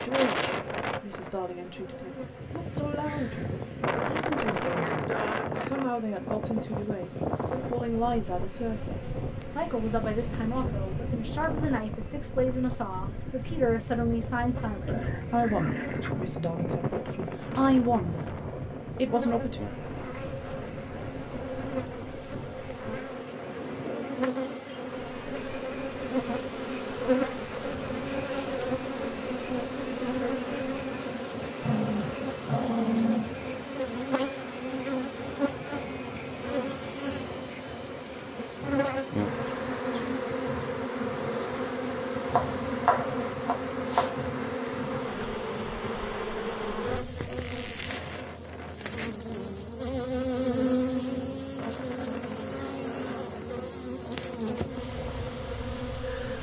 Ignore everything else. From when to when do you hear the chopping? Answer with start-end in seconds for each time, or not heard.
42.2-44.2.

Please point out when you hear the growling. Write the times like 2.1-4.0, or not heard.
14.8-16.1, 31.6-33.3.